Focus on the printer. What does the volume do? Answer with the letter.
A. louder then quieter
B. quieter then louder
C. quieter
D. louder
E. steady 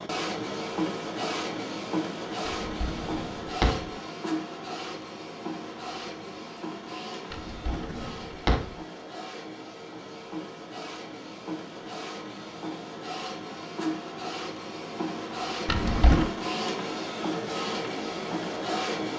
B.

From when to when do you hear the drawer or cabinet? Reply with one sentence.
You can hear the drawer or cabinet from 2.5 to 3.9 s, from 7.3 to 8.8 s and from 15.7 to 16.3 s.